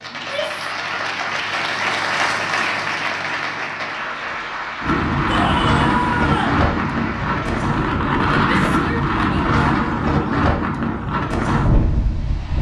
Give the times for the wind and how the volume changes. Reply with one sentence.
The wind can be heard from 4.8 to 12.5 s, at a steady volume.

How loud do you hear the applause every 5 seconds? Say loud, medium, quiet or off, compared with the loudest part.
loud, medium, off.